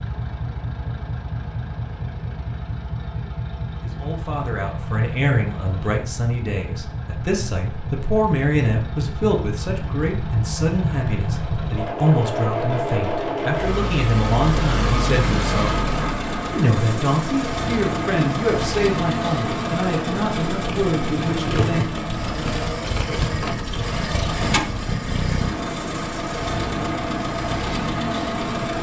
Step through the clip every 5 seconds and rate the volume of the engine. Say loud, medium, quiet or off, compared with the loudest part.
medium, medium, loud, loud, loud, loud.